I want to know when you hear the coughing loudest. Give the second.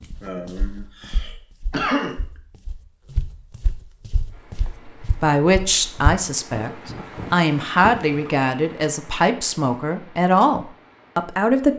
2 s.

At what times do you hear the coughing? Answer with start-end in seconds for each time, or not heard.
0.2-2.1, 6.5-8.2.